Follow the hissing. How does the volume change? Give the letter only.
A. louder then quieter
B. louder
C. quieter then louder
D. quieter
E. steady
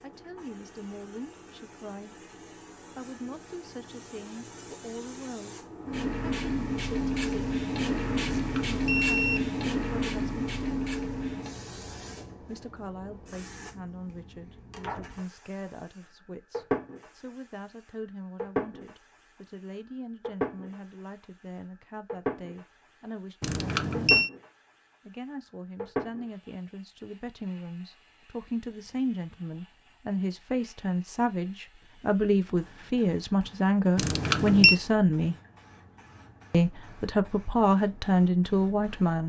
D.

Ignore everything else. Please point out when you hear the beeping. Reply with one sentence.
You can hear the beeping from 8.3 to 9.4 s, from 23.4 to 24.3 s and from 34.0 to 34.8 s.